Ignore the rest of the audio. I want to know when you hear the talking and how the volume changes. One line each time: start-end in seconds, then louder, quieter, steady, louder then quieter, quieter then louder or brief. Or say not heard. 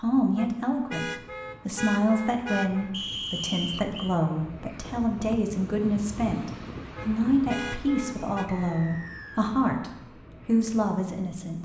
0.0-11.6 steady.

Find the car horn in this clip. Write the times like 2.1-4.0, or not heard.
0.3-2.9, 7.0-8.5.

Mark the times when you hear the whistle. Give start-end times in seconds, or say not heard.
2.9-4.2, 8.4-9.5.